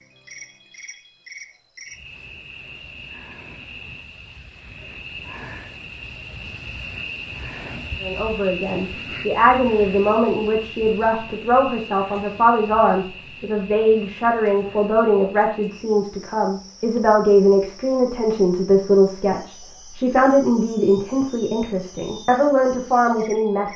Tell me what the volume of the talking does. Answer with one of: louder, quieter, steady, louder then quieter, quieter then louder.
steady.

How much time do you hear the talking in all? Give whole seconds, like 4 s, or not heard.
16 s.